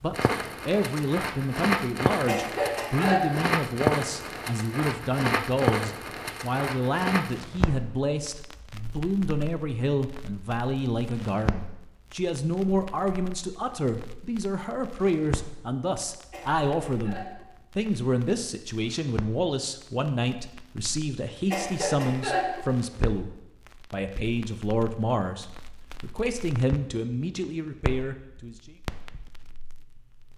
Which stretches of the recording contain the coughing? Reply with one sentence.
You can hear the coughing from 2.2 to 3.5 s, from 16.3 to 17.5 s and from 21.5 to 22.6 s.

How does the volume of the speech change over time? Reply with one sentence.
The volume of the speech stays about the same.